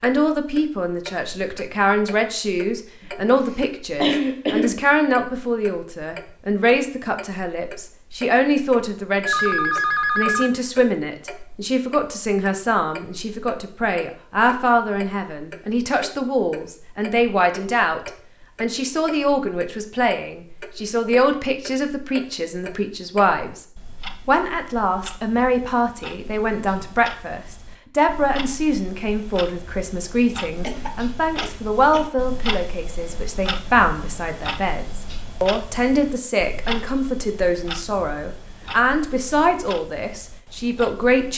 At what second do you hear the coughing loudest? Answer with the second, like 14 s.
4 s.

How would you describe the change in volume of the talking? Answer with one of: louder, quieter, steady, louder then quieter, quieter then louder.
steady.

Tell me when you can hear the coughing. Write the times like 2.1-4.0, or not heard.
3.0-4.8, 30.6-32.1.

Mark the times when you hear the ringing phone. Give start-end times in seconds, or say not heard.
9.2-10.5.